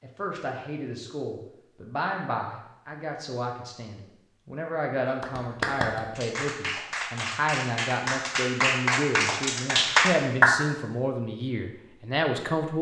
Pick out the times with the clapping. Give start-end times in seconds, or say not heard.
5.2-10.6.